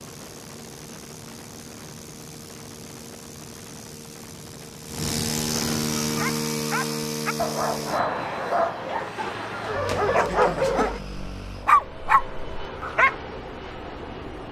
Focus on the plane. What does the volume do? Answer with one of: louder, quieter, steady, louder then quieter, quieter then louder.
louder then quieter.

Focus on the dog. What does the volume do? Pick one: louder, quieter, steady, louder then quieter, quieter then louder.
louder.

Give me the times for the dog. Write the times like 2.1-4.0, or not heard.
6.0-13.2.